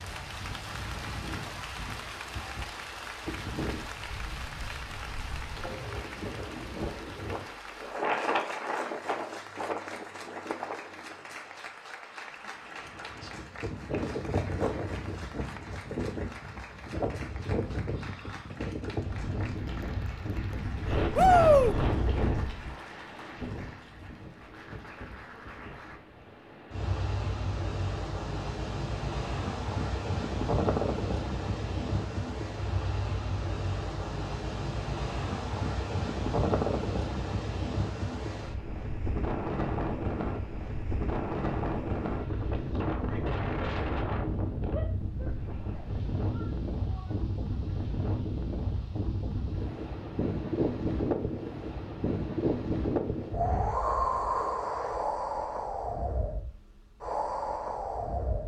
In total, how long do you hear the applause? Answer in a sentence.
The applause can be heard for 26 seconds in total.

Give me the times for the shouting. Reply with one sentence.
You can hear the shouting from 21.1 to 21.8 s and from 44.7 to 47.1 s.